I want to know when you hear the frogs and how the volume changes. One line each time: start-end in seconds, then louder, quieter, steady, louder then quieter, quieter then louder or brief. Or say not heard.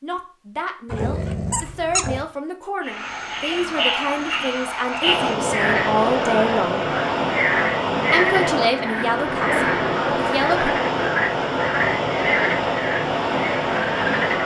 2.8-14.4 steady.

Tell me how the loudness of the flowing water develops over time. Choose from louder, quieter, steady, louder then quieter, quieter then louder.
steady.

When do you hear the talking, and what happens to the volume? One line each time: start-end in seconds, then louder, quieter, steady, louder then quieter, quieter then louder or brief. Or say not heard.
0.0-6.8 louder
8.1-10.8 brief.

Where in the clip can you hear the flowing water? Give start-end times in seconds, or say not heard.
5.0-14.4.